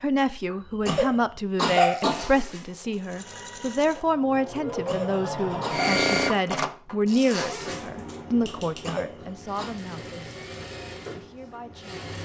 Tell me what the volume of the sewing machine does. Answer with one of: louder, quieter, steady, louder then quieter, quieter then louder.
louder then quieter.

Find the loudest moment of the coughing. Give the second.
2 s.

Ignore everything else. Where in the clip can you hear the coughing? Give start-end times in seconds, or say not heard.
0.5-2.2, 4.8-5.9, 8.5-9.8.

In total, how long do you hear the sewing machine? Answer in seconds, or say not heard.
9 s.